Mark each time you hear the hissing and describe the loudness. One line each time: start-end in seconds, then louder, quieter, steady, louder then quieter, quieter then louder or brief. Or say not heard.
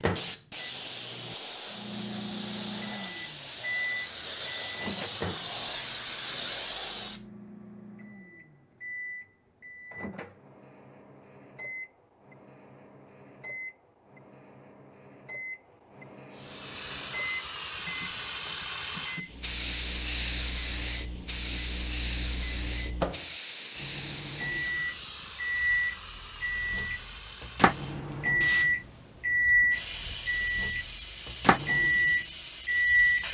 0.0-7.2 louder
16.4-33.2 quieter.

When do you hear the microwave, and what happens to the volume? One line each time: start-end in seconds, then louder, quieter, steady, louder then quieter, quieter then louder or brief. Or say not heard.
0.0-33.2 quieter then louder.